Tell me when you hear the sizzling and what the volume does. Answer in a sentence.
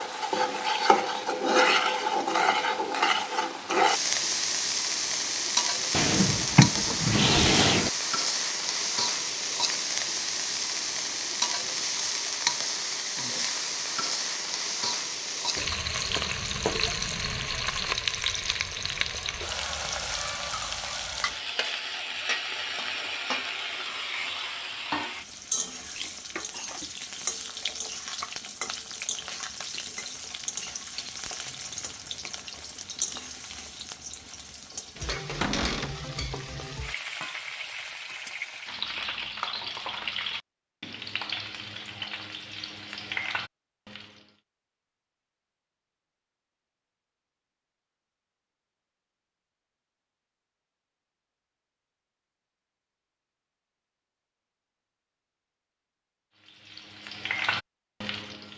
You can hear the sizzling from 0.0 to 44.2 s, getting quieter; and briefly from 56.4 to 58.5 s.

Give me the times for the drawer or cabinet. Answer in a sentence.
You can hear the drawer or cabinet from 5.9 to 7.9 s and from 35.4 to 36.0 s.